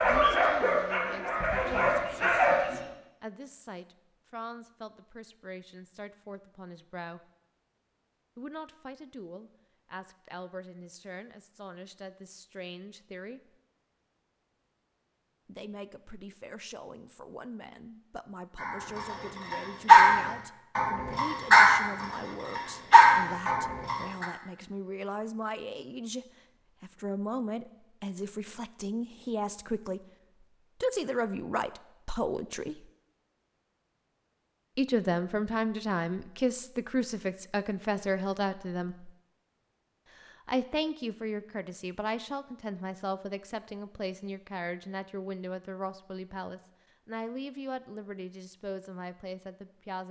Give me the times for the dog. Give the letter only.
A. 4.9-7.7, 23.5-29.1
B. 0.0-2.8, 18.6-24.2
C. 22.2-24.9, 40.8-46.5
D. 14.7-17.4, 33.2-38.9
B.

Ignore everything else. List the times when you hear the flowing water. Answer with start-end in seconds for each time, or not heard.
not heard.